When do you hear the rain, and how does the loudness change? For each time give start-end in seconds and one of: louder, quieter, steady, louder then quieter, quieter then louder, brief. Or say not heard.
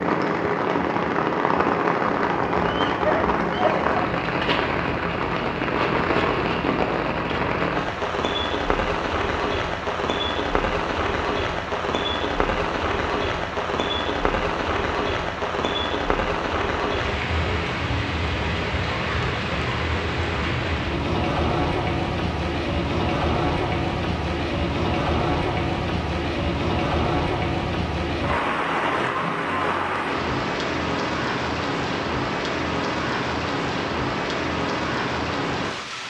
0.0-36.0 steady.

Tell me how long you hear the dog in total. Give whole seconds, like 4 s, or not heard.
2 s.